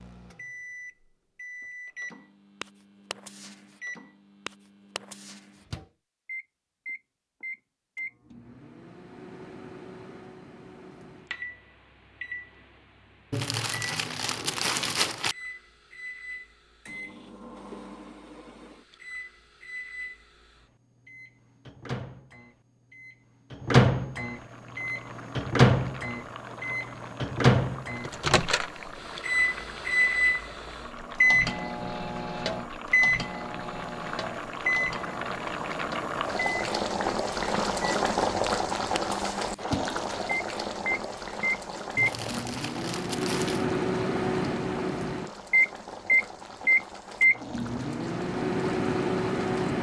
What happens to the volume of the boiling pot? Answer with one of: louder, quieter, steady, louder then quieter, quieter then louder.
louder then quieter.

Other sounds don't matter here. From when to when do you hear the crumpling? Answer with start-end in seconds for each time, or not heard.
13.3-15.3, 42.0-43.6.